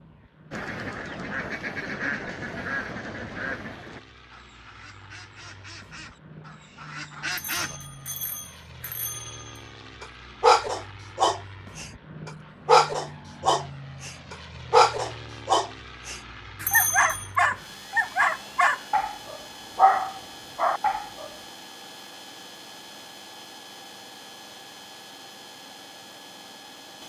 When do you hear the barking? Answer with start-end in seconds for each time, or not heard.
10.0-21.2.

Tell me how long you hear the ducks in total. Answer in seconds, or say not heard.
7 s.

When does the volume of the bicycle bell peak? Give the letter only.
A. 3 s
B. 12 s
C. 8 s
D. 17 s
D.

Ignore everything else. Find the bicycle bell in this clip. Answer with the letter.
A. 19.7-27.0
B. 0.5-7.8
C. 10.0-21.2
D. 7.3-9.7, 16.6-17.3
D.